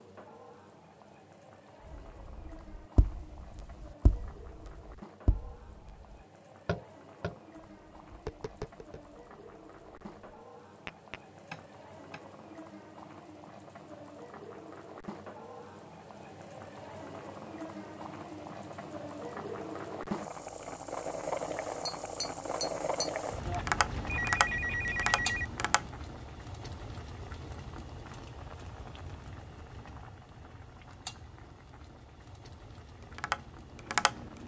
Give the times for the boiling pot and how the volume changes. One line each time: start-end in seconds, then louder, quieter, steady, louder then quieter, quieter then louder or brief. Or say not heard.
0.0-34.4 louder then quieter.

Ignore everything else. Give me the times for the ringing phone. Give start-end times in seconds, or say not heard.
23.4-25.4.